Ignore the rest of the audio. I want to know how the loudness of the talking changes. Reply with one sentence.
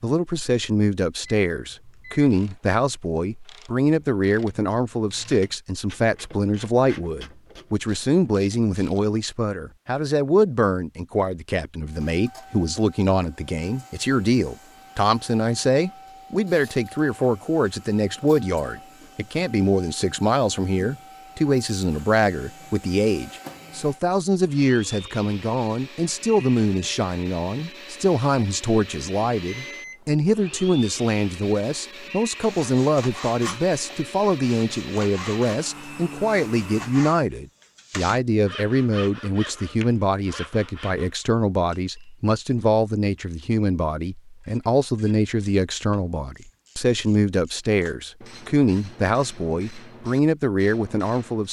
The loudness of the talking stays about the same.